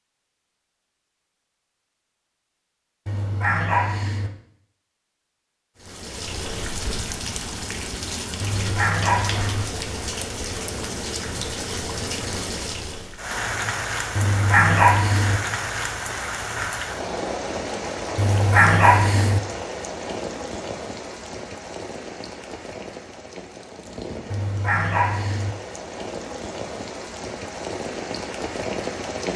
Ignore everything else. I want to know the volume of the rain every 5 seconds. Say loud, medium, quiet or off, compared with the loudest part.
off, loud, loud, loud, medium, loud.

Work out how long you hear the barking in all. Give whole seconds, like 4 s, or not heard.
6 s.